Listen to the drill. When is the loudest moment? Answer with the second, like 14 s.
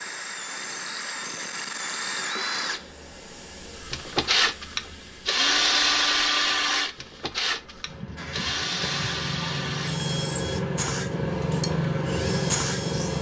6 s.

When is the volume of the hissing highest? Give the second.
12 s.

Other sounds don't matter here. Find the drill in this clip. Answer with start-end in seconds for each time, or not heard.
0.0-13.1.